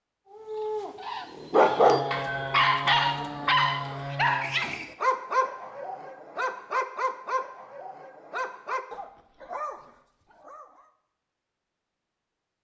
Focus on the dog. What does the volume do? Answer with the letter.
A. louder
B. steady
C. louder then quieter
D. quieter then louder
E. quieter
E.